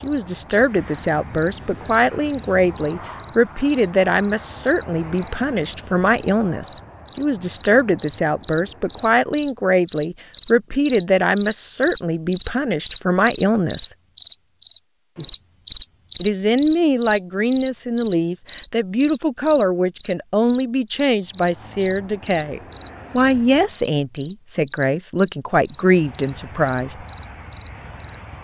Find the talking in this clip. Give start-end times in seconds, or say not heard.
0.0-13.9, 16.2-27.1.